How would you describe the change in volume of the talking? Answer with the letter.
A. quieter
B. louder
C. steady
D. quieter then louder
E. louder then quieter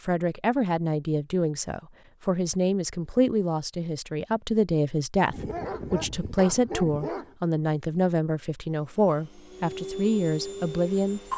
C.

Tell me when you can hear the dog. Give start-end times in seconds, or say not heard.
5.3-7.3.